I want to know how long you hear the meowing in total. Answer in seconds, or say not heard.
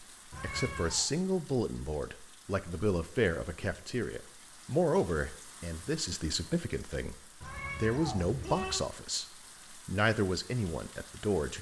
2 s.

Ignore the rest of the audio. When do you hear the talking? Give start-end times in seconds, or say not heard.
0.4-9.2, 9.8-11.5.